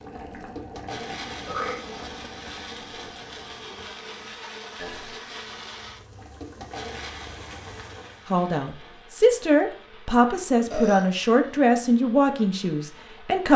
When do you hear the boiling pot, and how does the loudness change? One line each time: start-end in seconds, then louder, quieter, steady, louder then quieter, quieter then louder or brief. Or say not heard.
0.0-8.3 quieter then louder.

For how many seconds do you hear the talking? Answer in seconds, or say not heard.
5 s.